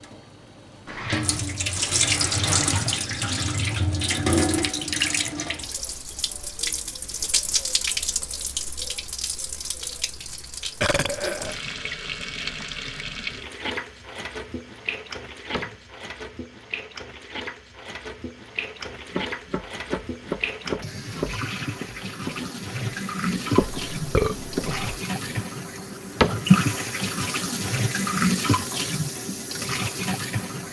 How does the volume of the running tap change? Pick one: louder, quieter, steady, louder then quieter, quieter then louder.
quieter then louder.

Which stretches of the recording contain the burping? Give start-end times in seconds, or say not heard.
10.8-11.6, 23.8-25.0.